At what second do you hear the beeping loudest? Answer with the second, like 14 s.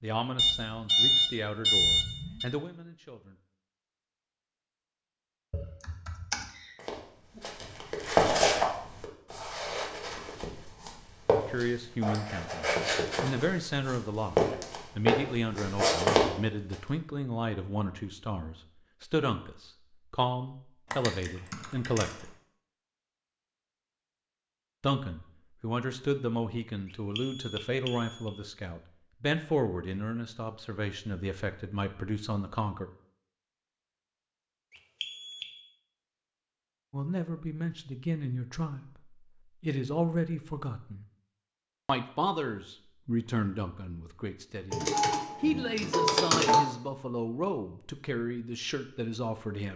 1 s.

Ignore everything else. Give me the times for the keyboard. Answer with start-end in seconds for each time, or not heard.
5.5-7.4, 20.9-22.3, 44.7-46.6.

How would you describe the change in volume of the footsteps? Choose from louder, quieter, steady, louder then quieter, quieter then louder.
quieter then louder.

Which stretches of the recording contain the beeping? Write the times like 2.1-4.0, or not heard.
0.3-2.5, 27.1-28.3, 35.0-35.5.